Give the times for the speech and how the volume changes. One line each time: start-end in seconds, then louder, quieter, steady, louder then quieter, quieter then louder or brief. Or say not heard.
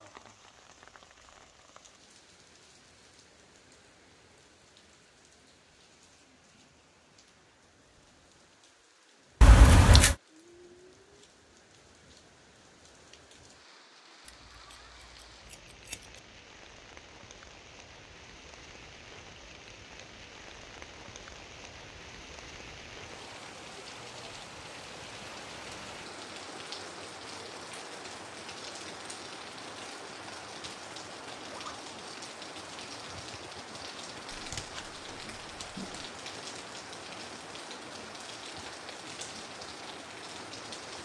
not heard.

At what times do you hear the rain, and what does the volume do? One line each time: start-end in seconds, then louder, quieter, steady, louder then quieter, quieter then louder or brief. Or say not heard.
0.0-41.0 louder.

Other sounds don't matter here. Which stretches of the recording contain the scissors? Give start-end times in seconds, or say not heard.
9.4-10.2, 14.2-16.2, 34.3-36.0.